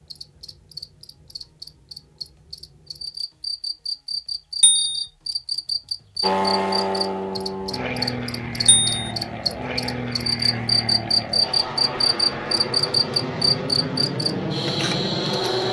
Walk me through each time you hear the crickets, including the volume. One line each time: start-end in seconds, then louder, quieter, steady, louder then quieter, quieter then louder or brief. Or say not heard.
0.0-15.6 louder.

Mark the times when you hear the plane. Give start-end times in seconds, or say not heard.
6.2-15.6.